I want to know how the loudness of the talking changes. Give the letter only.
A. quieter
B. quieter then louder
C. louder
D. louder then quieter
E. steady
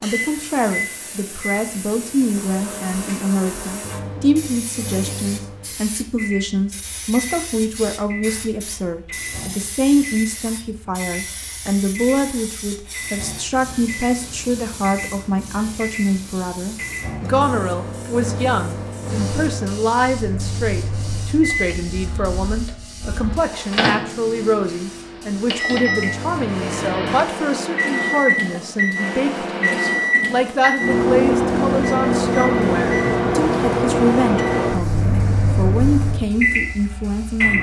E.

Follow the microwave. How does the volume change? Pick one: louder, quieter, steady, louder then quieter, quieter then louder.
louder.